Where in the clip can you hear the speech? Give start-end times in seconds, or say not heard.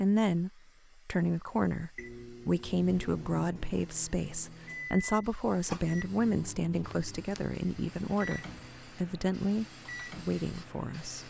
0.0-11.2.